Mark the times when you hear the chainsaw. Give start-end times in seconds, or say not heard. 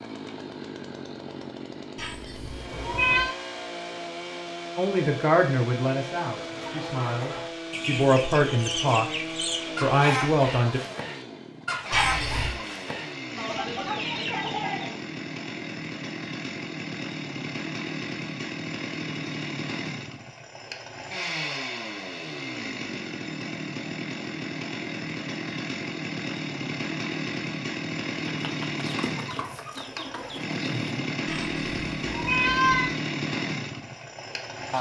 0.0-34.7.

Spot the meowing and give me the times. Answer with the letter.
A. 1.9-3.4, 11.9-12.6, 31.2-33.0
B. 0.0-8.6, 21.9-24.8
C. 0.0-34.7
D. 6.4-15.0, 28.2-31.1
A.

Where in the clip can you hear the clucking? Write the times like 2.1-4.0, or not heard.
6.4-15.0, 28.2-31.1.